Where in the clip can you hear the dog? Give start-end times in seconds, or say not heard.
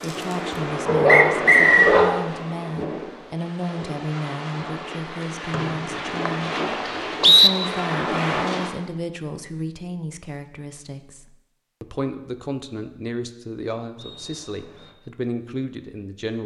0.5-2.0.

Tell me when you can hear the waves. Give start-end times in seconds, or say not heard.
0.0-8.7.